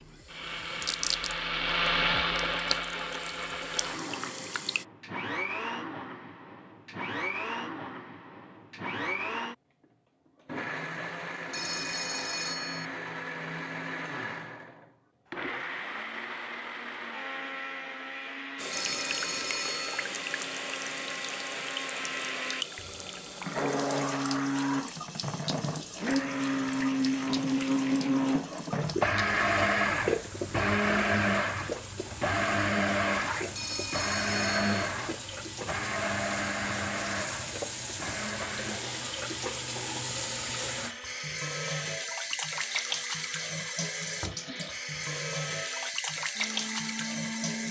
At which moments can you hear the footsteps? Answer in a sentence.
You can't hear the footsteps here.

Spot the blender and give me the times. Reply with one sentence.
You can hear the blender from 0.0 to 47.6 s.